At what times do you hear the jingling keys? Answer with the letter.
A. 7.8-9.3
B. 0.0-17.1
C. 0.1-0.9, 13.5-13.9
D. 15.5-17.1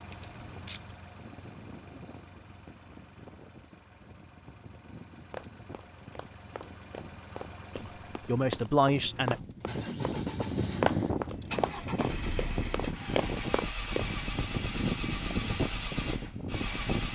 C.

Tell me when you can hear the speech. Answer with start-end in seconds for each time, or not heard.
7.8-9.3.